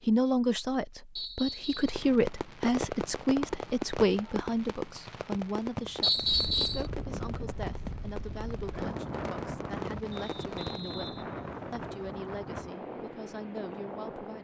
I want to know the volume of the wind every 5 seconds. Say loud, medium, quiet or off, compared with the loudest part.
off, loud, loud.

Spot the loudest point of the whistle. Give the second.
6 s.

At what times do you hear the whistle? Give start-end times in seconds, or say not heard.
1.1-2.0, 6.0-6.8, 10.1-12.1.